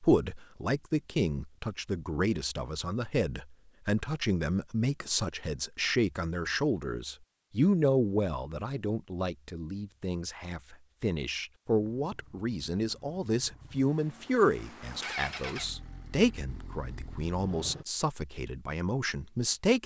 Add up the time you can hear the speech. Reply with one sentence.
You can hear the speech for 20 seconds altogether.